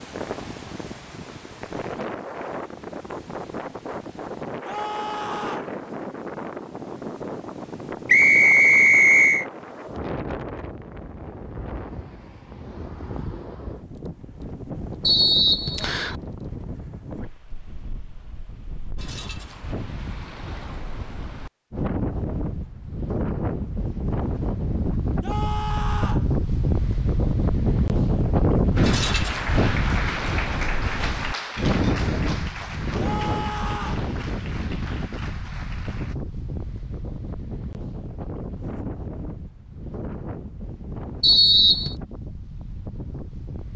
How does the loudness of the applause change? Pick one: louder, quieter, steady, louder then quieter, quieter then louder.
quieter.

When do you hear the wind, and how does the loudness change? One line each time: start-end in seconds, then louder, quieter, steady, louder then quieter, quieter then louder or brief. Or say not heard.
0.0-43.7 louder then quieter.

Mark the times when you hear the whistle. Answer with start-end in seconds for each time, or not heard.
8.1-9.4, 15.1-16.1, 41.2-42.0.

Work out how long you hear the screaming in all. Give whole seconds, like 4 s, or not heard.
3 s.